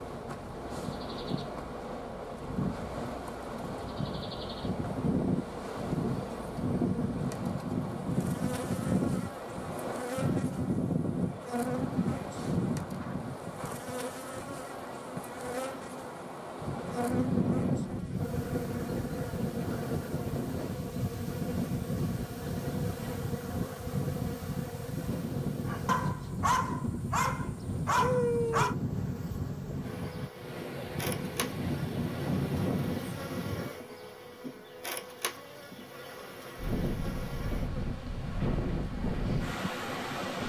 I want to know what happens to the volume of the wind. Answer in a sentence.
The volume of the wind stays about the same.